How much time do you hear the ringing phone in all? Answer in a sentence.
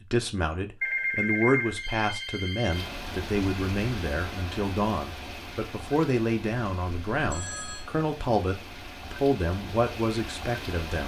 You can hear the ringing phone for 3 seconds altogether.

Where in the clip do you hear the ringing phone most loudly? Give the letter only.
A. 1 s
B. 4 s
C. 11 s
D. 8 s
A.